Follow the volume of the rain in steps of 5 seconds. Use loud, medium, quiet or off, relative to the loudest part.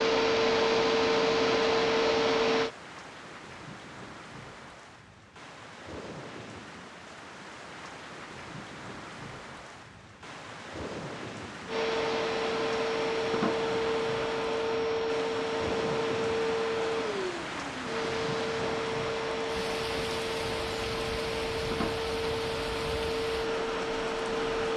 medium, medium, loud, loud, loud.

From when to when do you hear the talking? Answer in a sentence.
You can't hear the talking here.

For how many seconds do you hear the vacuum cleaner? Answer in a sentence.
The vacuum cleaner can be heard for 16 seconds in total.